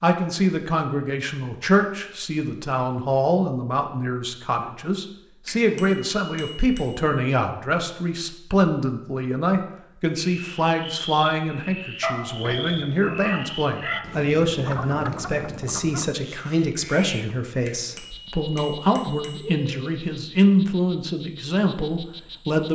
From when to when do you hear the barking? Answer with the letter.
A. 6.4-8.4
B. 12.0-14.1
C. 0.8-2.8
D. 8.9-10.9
B.